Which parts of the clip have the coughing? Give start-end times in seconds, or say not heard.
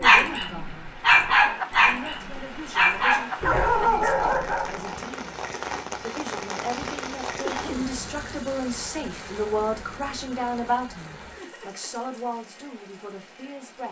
7.4-8.0.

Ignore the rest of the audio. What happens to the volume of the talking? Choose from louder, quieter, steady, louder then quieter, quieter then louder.
louder then quieter.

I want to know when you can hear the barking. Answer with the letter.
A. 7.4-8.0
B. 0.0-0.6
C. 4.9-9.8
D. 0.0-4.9
D.